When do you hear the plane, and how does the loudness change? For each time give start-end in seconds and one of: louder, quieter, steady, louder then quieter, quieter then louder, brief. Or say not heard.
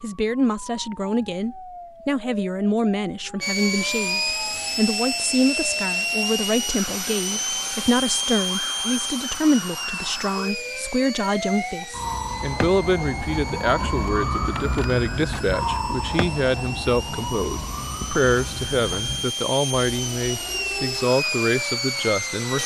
3.4-22.6 quieter then louder.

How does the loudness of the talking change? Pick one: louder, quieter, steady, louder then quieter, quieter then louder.
steady.